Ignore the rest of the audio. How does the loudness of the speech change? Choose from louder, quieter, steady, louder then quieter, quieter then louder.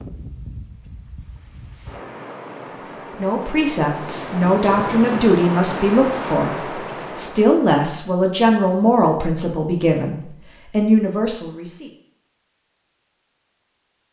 steady.